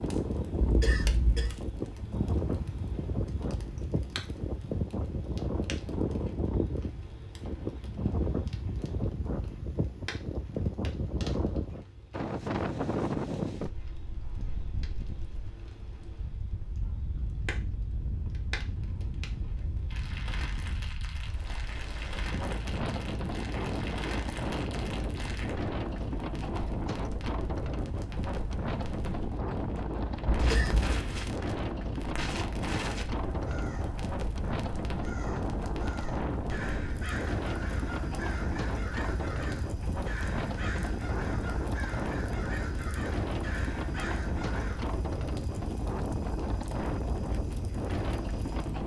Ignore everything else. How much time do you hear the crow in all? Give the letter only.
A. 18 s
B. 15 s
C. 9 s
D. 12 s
D.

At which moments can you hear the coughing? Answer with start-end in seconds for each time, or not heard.
0.6-1.6, 30.3-30.9.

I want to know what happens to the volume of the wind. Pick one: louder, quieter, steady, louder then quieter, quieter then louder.
steady.